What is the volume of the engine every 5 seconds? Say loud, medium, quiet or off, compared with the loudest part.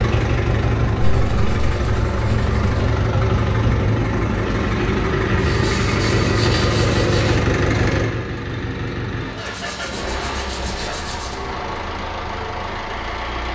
loud, loud, medium.